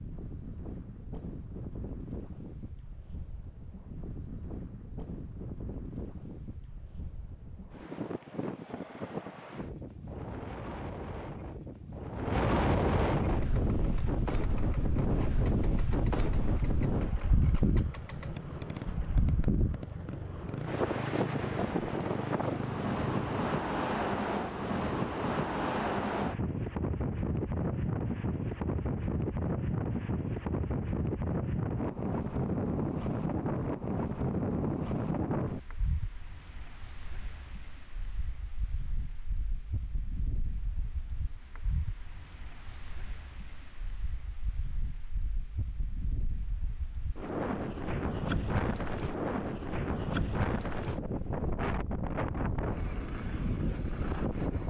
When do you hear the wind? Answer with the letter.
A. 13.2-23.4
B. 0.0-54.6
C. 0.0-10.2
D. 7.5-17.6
B.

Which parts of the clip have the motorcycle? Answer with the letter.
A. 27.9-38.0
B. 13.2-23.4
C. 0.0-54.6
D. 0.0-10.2
B.